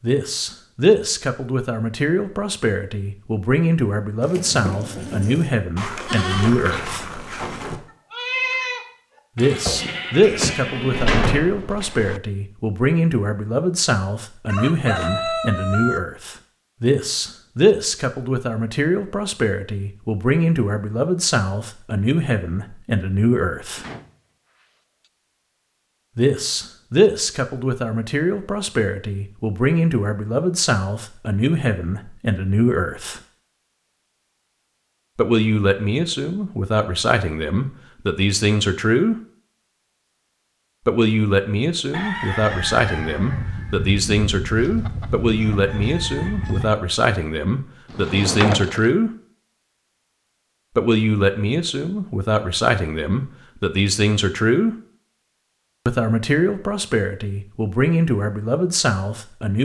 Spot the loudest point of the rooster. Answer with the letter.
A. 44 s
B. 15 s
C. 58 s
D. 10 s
B.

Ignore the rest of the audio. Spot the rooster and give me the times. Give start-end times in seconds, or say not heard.
14.4-16.0, 41.9-46.8.